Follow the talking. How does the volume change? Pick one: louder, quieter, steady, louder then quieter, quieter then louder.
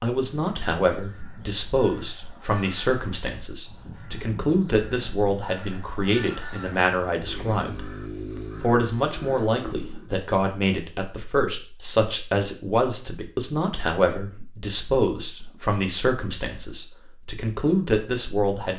steady.